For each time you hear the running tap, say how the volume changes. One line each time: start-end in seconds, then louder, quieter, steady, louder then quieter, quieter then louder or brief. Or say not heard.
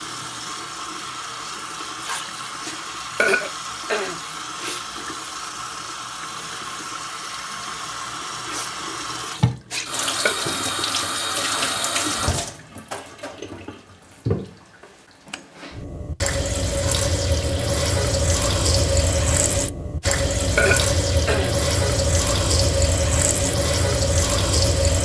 0.0-25.0 louder.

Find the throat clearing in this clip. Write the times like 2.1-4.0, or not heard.
2.6-4.2, 9.7-10.3, 20.0-21.6.